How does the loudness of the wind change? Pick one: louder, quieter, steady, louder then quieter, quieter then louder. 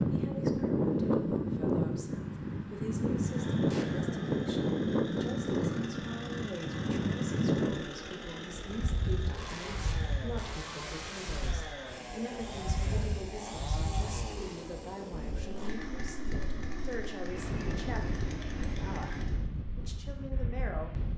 quieter.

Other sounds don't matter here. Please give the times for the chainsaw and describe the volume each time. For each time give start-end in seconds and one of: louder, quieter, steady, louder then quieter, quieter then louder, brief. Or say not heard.
3.1-19.4 steady.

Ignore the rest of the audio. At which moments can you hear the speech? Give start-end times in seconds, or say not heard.
0.1-20.9.